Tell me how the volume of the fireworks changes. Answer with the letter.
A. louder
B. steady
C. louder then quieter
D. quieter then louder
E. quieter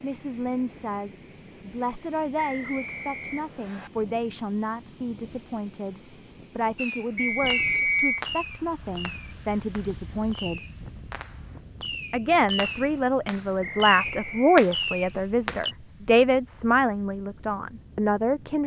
D.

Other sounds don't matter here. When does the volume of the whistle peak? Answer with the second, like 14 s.
8 s.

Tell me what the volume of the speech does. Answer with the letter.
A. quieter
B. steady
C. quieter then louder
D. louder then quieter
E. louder
E.